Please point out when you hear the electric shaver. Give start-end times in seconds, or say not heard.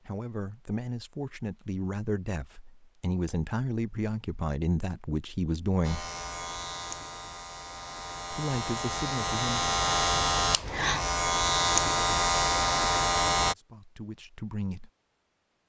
5.8-13.6.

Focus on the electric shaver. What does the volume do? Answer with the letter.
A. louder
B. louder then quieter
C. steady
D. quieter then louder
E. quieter
A.